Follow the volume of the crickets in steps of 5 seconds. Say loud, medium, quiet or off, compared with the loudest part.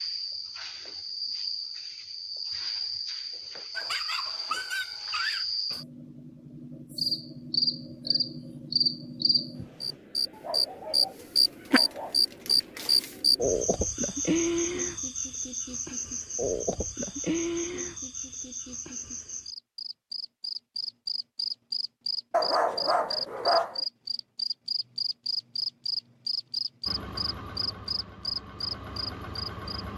medium, medium, loud, medium, medium, medium.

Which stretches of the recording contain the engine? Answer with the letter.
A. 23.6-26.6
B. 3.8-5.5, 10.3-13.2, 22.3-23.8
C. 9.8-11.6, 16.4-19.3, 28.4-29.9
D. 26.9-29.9
D.